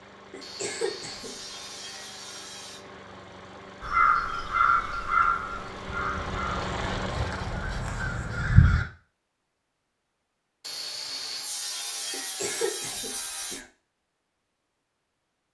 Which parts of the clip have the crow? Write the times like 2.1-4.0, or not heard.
3.8-8.8.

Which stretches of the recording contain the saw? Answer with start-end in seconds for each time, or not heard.
0.4-2.9, 5.8-8.3, 10.6-13.6.